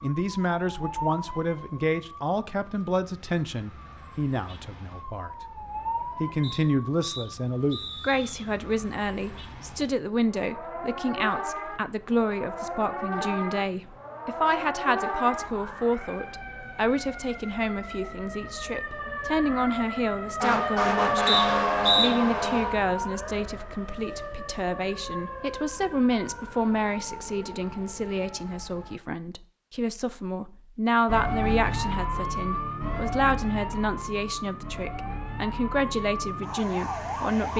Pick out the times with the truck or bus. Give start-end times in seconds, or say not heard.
not heard.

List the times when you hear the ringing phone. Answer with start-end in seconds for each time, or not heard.
not heard.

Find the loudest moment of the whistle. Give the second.
22 s.